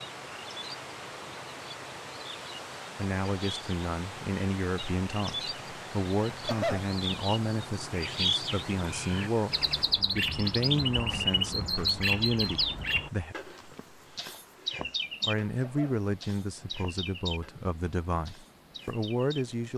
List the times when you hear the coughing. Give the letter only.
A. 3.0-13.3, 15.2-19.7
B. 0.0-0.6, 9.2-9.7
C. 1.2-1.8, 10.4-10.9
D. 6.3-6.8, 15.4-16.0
D.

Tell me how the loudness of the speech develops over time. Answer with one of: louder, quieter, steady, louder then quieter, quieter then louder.
steady.